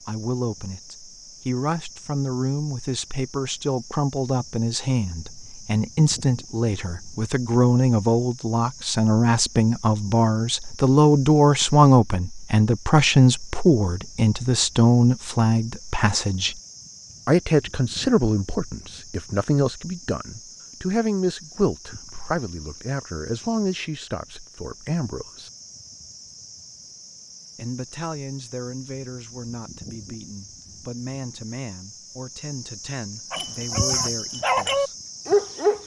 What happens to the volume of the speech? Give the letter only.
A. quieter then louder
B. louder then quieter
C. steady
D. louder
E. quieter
B.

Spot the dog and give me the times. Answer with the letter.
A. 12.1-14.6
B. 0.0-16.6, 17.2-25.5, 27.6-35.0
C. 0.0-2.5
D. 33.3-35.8
D.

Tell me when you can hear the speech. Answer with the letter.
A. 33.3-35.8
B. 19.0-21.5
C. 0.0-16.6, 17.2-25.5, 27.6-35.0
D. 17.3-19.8
C.